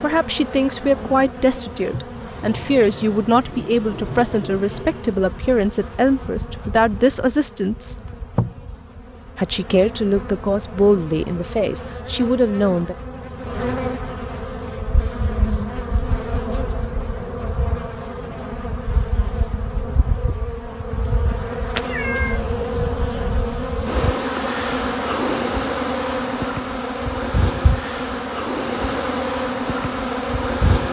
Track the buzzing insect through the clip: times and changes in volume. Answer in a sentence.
The buzzing insect can be heard from 0.0 to 30.8 s, getting louder.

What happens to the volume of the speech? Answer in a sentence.
The volume of the speech stays about the same.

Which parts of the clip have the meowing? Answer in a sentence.
You can hear the meowing from 21.8 to 22.4 s.